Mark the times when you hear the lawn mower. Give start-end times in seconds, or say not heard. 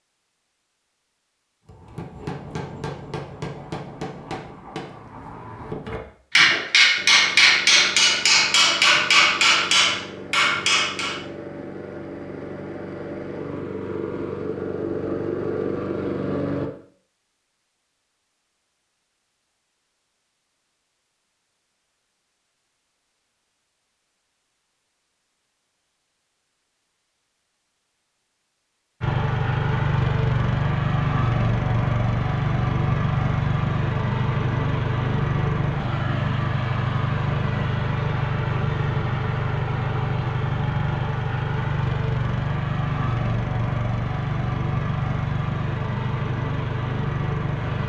7.0-16.7, 29.0-47.8.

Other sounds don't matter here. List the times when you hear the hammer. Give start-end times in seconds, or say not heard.
1.6-11.2.